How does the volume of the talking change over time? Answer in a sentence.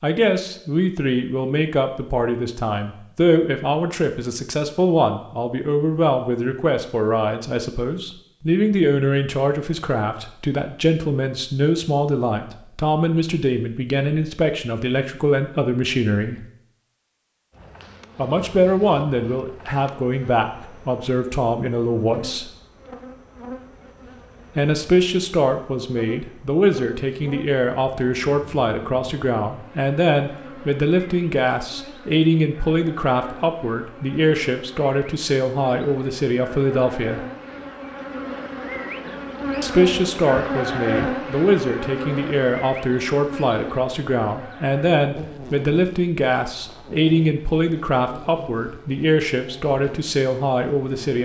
The volume of the talking stays about the same.